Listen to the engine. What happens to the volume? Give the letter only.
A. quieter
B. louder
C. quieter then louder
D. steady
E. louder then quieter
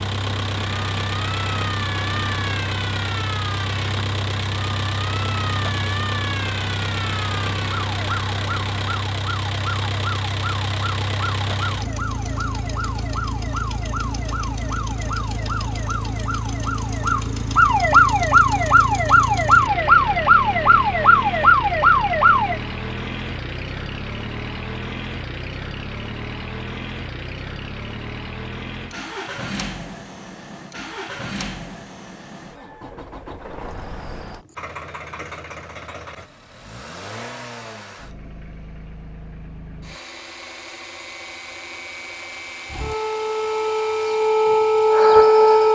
A.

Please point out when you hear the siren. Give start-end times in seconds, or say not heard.
0.0-22.6, 42.7-45.7.